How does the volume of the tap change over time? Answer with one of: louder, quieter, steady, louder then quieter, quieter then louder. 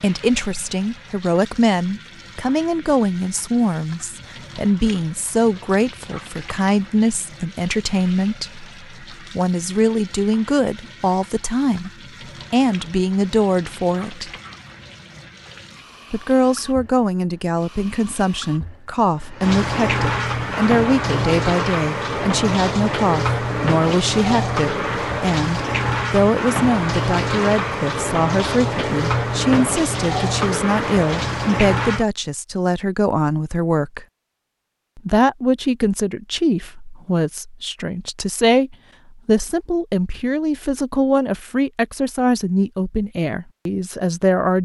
louder.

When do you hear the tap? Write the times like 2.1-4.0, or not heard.
0.0-32.0.